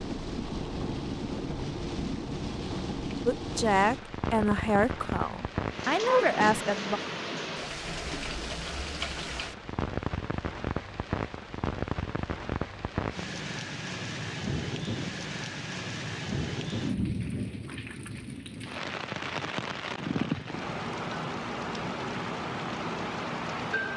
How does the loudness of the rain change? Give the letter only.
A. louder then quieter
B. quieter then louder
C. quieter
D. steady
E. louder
D.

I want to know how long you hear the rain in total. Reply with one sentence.
You can hear the rain for 24 seconds altogether.